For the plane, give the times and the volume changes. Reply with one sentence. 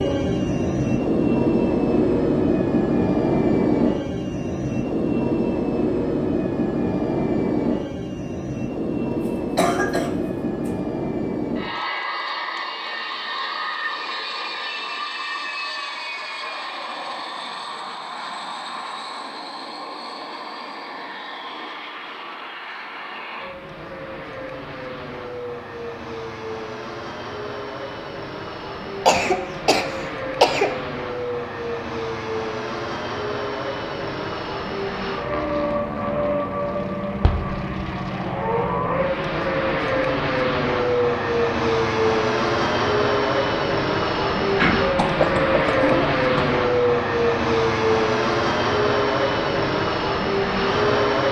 The plane can be heard from 0.0 to 51.2 s, getting quieter then louder.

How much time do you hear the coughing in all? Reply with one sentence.
You can hear the coughing for 5 seconds altogether.